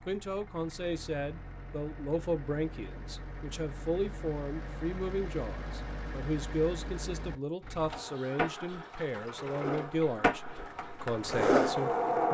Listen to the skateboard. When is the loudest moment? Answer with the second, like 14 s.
12 s.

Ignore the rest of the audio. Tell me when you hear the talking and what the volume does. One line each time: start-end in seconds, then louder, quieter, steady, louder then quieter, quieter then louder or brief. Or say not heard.
0.1-12.3 steady.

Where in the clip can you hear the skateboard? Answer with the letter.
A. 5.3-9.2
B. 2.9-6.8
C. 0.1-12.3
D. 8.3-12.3
D.